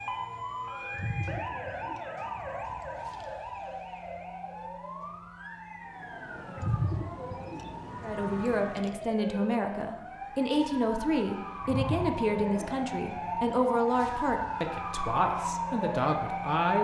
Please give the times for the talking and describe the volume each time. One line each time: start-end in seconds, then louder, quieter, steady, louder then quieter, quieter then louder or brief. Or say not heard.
8.0-16.8 steady.